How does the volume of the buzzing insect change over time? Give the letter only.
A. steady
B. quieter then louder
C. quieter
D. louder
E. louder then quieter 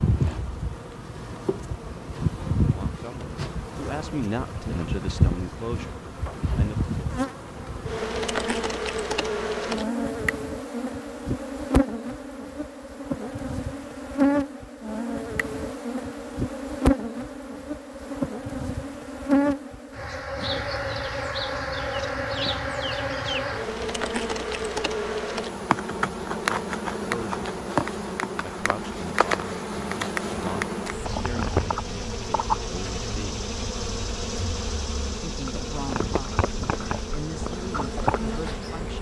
A.